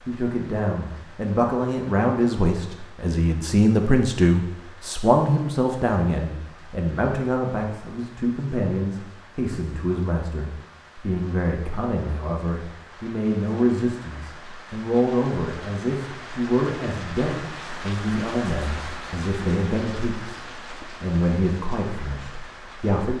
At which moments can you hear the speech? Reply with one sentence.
You can hear the speech from 0.0 to 23.1 s.